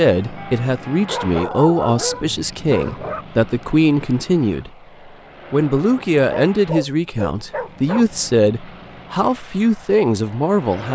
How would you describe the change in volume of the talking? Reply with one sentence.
The volume of the talking stays about the same.